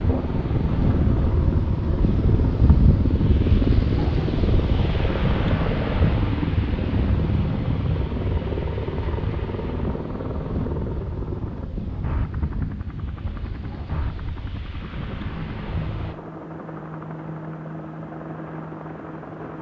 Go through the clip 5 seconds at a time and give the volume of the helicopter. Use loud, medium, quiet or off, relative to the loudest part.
loud, loud, medium, medium.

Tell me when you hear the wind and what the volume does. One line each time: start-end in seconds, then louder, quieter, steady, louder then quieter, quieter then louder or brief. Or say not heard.
0.0-16.1 quieter.